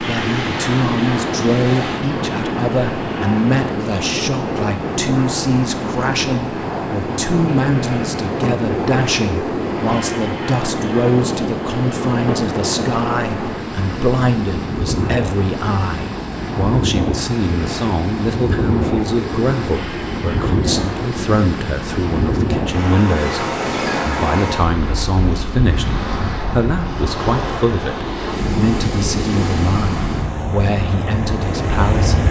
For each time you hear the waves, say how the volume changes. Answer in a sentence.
The waves can be heard from 0.0 to 32.2 s, at a steady volume.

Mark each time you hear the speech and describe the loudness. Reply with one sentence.
You can hear the speech from 0.0 to 32.2 s, at a steady volume.